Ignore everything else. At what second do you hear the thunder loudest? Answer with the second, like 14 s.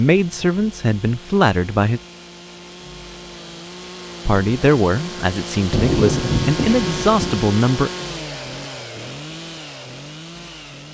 6 s.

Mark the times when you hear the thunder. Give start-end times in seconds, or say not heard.
5.7-7.5.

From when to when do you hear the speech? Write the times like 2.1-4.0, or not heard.
0.0-2.0, 4.2-7.9.